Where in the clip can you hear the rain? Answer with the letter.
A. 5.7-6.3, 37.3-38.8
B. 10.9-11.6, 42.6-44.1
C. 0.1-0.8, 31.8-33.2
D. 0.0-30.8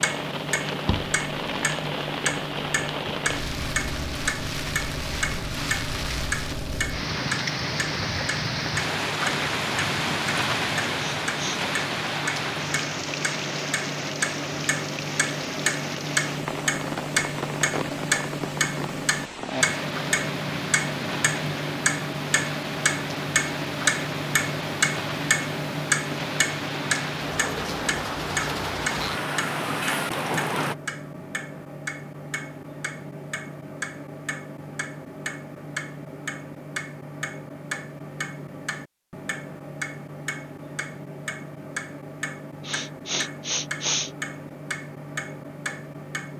D.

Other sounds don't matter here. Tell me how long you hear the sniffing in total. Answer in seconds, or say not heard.
2 s.